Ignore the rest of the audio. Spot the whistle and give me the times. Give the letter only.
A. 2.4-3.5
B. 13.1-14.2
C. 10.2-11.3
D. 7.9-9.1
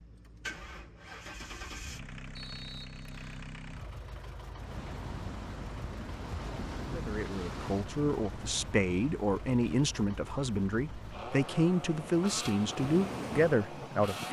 A.